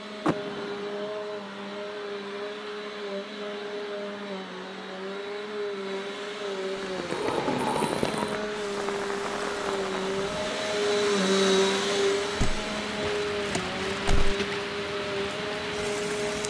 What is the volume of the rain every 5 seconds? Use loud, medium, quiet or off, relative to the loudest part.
off, loud, loud, loud.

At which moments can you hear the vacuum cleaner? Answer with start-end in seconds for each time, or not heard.
0.0-16.4.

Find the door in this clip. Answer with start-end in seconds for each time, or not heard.
0.2-1.1, 7.1-8.4, 12.4-14.3.